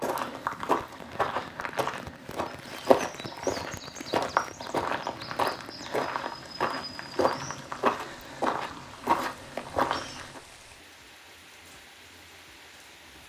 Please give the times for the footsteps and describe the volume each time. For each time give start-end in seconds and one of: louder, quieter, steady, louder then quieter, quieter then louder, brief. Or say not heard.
0.0-10.4 steady.